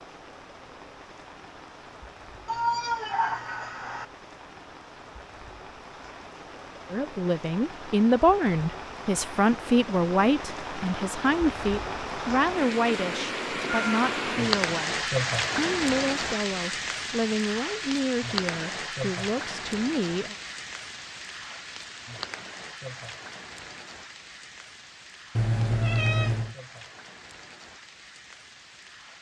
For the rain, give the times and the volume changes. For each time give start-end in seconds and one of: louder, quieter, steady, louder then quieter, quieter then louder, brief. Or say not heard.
0.0-29.1 louder then quieter.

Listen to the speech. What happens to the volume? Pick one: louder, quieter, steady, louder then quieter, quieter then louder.
quieter.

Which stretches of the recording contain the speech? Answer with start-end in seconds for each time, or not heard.
6.9-20.4.